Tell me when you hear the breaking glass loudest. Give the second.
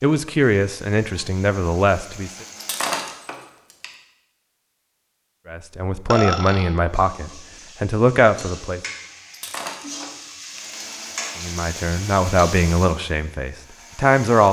3 s.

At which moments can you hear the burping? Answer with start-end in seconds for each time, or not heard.
6.1-6.7.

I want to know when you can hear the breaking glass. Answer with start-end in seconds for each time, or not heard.
2.5-3.9, 9.3-10.6.